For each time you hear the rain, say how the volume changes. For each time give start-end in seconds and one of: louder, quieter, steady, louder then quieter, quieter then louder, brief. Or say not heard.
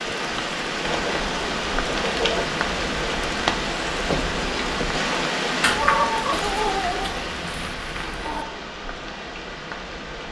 0.0-10.2 quieter.